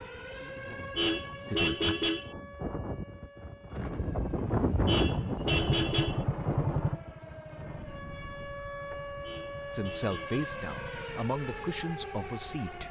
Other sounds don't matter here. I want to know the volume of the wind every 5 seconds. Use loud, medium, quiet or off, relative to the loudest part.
loud, loud, quiet.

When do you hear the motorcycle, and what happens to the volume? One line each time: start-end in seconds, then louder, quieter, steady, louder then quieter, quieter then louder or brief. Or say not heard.
5.5-11.2 quieter.